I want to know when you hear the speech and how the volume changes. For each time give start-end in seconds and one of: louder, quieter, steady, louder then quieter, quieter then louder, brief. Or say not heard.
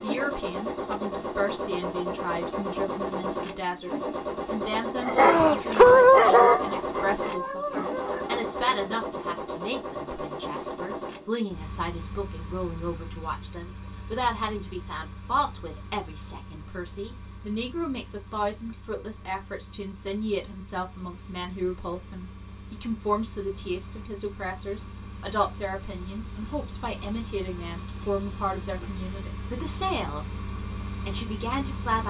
0.0-32.0 steady.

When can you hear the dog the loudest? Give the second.
6 s.